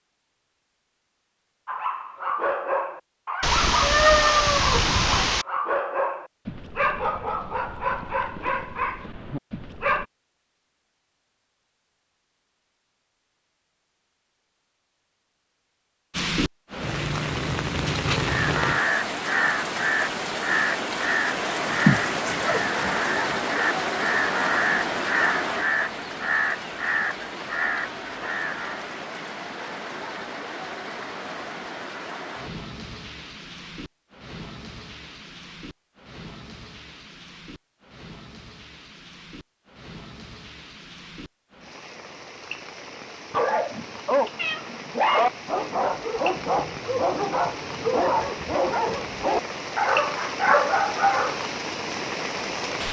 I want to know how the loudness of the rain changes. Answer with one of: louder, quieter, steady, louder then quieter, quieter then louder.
quieter then louder.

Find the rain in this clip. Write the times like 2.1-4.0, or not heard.
16.1-52.8.